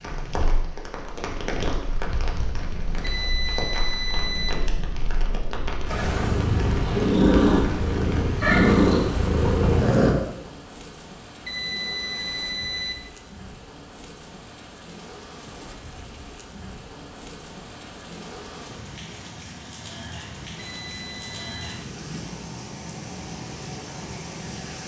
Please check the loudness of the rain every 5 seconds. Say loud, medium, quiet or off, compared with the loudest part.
loud, loud, medium, medium, loud.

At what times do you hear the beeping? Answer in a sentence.
You can hear the beeping from 3.0 to 4.5 s, from 11.4 to 12.9 s and from 20.6 to 21.8 s.